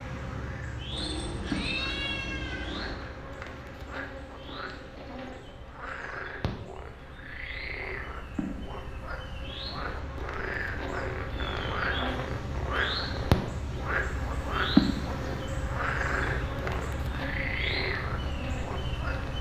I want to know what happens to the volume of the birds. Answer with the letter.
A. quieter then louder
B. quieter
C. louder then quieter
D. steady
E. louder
A.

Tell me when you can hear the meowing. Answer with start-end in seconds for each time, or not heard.
0.9-3.0.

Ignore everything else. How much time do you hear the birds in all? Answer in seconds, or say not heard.
19 s.